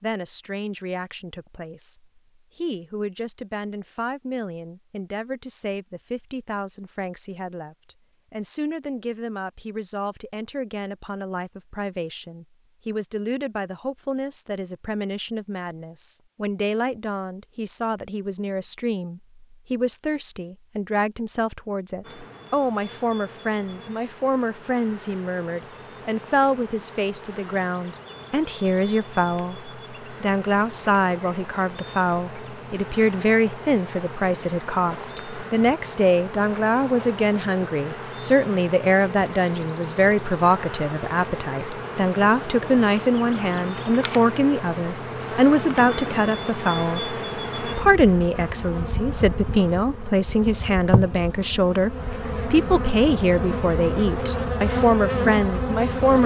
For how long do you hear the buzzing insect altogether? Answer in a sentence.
You can hear the buzzing insect for 34 seconds altogether.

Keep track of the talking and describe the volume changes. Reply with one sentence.
The volume of the talking goes up.